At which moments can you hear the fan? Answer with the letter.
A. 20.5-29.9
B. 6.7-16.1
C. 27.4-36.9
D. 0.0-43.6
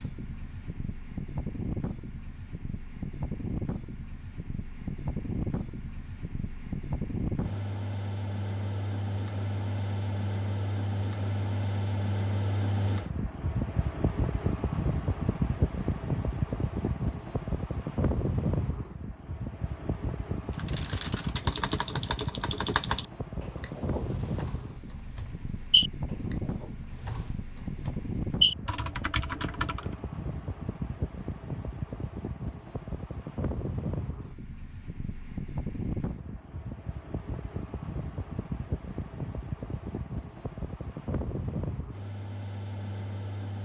D.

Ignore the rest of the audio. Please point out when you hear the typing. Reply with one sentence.
The typing can be heard from 20.5 to 29.9 s.